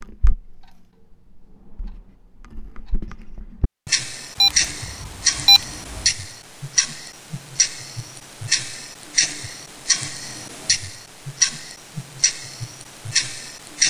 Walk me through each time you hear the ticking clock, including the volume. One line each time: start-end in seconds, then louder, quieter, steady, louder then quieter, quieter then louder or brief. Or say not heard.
0.0-13.8 louder.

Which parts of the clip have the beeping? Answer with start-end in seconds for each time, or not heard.
4.4-6.1.